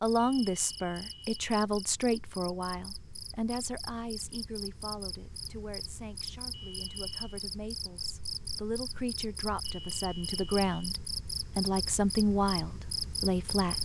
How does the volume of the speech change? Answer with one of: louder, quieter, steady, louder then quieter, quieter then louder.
quieter then louder.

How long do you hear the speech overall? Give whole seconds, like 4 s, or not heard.
14 s.